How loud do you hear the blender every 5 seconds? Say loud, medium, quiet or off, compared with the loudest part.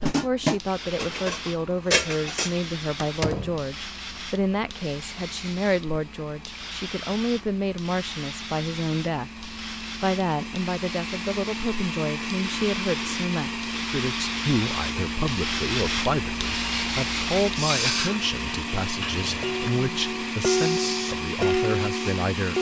quiet, quiet, loud, loud, loud.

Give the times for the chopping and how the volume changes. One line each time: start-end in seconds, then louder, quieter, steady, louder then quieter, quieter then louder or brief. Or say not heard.
not heard.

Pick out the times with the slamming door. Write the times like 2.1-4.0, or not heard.
3.0-3.6.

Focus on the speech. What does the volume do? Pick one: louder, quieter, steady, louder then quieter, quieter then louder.
steady.